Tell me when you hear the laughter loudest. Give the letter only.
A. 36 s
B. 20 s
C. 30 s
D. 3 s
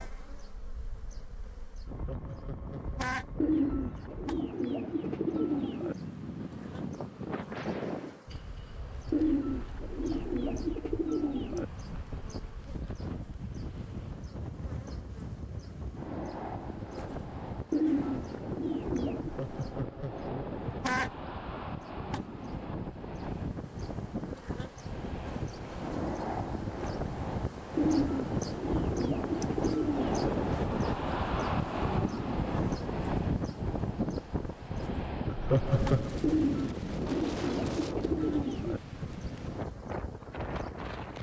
A.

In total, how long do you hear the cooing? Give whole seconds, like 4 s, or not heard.
12 s.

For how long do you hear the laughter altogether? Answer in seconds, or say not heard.
4 s.